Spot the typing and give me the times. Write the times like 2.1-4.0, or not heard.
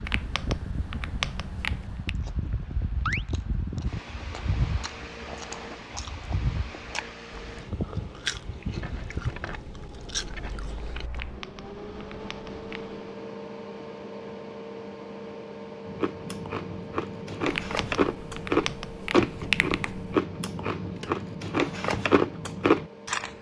0.1-2.1, 11.1-12.9, 17.4-20.2.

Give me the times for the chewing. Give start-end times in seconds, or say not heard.
2.0-11.2, 15.8-23.3.